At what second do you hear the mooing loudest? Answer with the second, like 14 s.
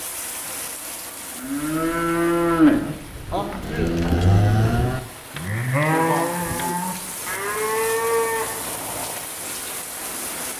3 s.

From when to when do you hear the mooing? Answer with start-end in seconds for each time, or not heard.
1.4-9.2.